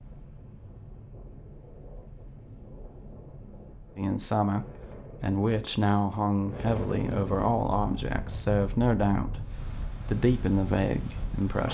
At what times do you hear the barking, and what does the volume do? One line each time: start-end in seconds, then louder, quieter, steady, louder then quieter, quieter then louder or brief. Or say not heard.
not heard.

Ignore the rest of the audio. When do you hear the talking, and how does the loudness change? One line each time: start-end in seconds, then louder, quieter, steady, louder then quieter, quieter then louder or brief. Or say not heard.
4.0-11.6 steady.